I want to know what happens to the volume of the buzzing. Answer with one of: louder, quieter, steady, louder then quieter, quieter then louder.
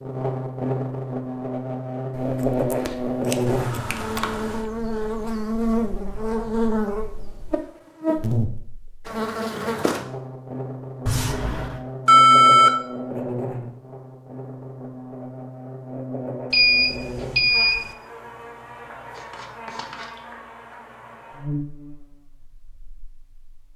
quieter.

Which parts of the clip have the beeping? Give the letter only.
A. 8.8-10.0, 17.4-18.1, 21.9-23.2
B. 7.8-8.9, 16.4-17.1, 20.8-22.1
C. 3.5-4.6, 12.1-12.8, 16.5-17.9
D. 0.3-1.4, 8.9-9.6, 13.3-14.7
C.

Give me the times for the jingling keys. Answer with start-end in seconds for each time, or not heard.
not heard.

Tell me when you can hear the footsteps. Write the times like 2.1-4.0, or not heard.
not heard.